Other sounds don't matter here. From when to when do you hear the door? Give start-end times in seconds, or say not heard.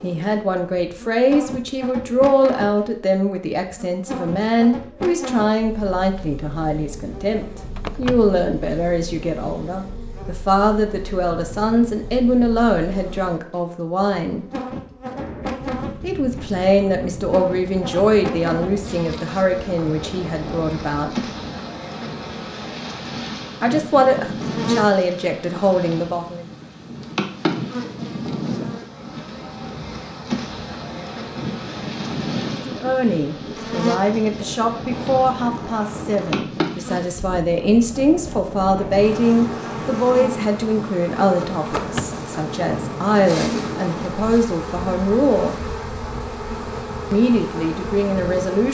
7.8-8.3, 41.6-42.2.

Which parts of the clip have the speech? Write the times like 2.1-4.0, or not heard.
0.0-14.4, 16.0-21.2, 23.6-26.4, 32.5-45.5, 47.1-48.6.